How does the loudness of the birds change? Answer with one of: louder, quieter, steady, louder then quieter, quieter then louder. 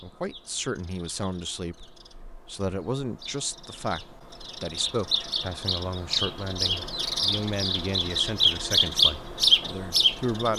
louder.